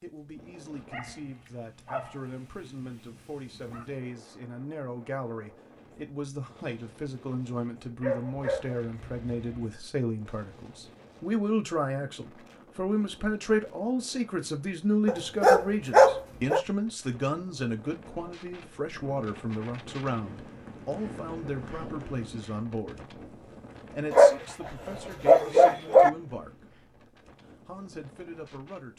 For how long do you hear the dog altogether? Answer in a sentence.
You can hear the dog for 8 seconds altogether.